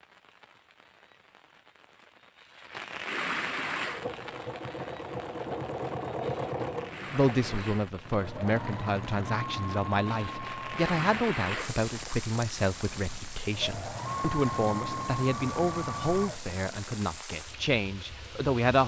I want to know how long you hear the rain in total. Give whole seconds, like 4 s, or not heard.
19 s.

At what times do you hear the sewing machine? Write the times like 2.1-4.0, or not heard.
3.8-17.2.